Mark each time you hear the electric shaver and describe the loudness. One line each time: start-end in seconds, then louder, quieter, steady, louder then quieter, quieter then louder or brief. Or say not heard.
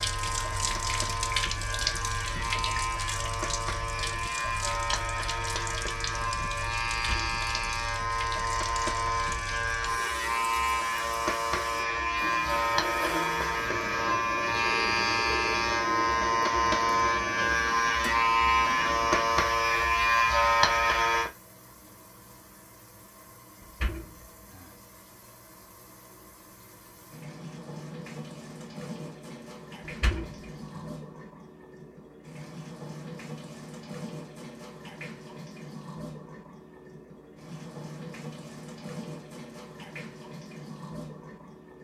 0.0-21.3 louder.